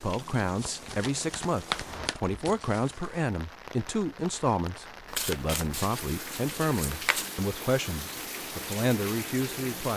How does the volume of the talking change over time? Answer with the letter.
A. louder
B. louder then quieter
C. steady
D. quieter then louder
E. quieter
C.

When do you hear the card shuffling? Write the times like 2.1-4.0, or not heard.
0.6-3.1, 5.0-7.3.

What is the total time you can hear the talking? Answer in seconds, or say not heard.
10 s.